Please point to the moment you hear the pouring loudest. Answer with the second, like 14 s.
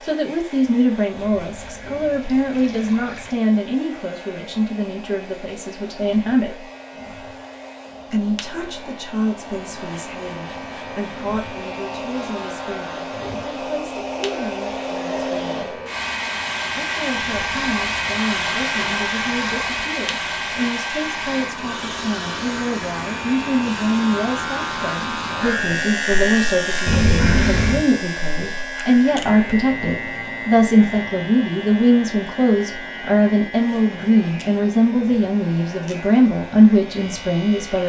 27 s.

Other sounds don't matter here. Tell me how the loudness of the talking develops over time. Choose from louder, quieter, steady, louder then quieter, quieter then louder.
quieter then louder.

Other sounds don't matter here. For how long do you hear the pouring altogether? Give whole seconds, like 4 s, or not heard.
6 s.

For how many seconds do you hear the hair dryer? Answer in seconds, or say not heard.
38 s.